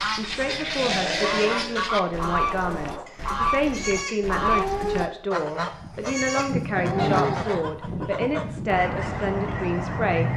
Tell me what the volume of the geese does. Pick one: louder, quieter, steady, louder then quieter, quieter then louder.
steady.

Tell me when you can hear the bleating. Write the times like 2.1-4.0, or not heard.
0.0-8.8.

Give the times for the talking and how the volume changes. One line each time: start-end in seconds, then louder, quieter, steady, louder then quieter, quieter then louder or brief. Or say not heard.
0.1-10.3 steady.